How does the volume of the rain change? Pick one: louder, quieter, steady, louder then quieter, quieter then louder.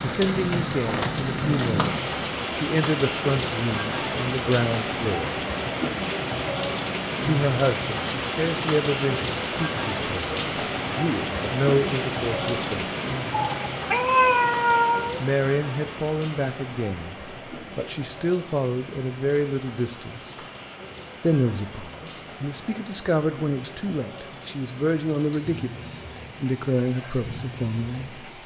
quieter.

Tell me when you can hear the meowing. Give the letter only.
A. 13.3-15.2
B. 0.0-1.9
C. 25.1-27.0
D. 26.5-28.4
A.